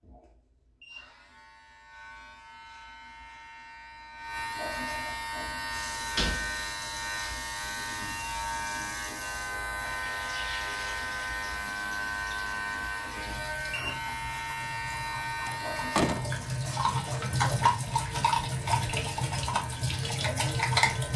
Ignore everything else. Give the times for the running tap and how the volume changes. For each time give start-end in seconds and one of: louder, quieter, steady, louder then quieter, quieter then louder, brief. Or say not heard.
5.7-21.1 louder.